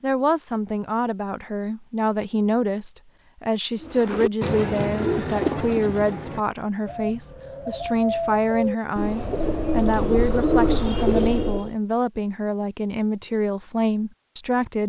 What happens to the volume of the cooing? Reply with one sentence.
The volume of the cooing goes down, then up.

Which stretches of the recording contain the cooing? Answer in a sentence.
The cooing can be heard from 3.8 to 11.7 s.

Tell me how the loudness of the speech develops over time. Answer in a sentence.
The loudness of the speech stays about the same.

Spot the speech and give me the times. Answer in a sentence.
You can hear the speech from 0.0 to 14.8 s.